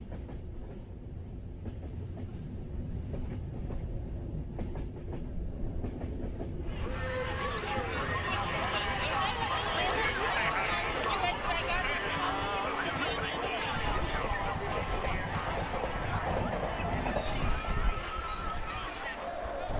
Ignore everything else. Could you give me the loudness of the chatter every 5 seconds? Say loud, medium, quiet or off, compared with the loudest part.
off, loud, loud, medium.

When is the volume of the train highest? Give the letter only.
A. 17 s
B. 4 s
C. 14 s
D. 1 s
A.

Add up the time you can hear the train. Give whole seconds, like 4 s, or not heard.
20 s.